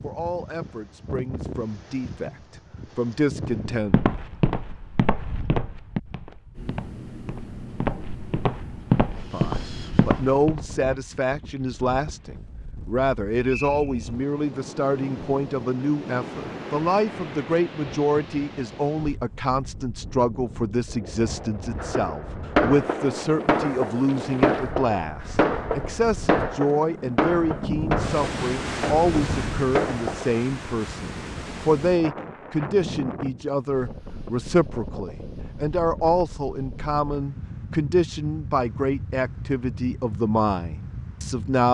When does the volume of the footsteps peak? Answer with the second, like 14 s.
9 s.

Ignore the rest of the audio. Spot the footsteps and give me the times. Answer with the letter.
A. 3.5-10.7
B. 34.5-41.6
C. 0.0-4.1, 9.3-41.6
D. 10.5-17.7
A.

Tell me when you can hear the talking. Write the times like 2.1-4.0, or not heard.
0.0-4.1, 9.3-41.6.